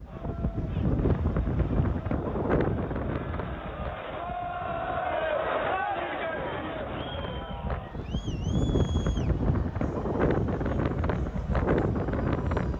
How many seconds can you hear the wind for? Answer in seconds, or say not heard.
13 s.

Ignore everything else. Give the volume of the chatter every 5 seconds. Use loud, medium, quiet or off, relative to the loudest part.
medium, loud, quiet.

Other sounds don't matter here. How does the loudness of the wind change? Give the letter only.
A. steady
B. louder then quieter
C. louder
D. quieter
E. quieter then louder
E.